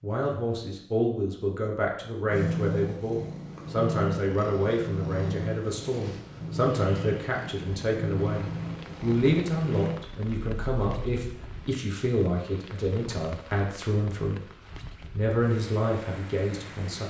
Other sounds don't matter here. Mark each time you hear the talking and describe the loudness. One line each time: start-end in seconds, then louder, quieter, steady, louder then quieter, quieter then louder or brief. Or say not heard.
0.0-14.5 steady
15.1-17.0 brief.